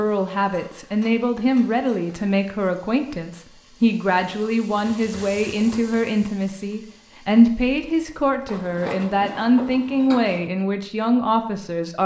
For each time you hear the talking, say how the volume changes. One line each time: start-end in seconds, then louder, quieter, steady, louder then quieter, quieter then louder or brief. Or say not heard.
0.0-12.0 steady.